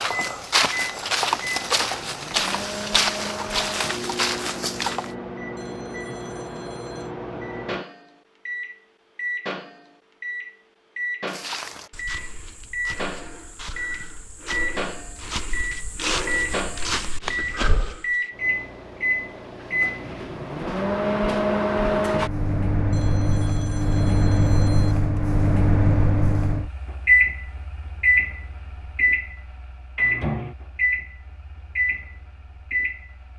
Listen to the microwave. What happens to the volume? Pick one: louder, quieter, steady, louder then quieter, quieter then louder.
louder.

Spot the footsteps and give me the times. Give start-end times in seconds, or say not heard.
0.0-5.1, 11.2-18.2.